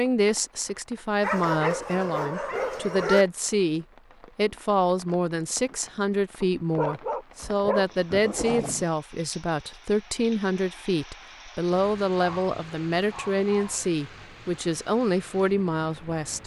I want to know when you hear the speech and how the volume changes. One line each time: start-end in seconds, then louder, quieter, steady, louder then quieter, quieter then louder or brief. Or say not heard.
0.0-16.4 steady.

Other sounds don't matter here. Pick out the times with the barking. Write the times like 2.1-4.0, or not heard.
1.2-3.2, 6.8-8.8, 12.2-13.9.